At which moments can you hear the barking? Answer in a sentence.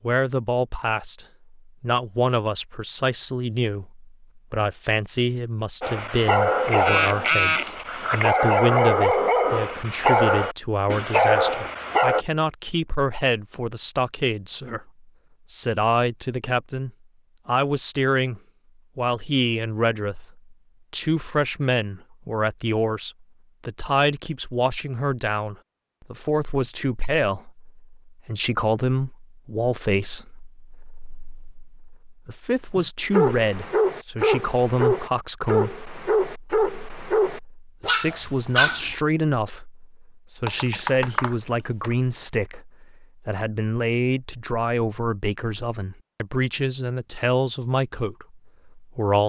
You can hear the barking from 5.8 to 12.2 s and from 32.8 to 39.0 s.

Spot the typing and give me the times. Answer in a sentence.
The typing can be heard from 40.5 to 42.0 s.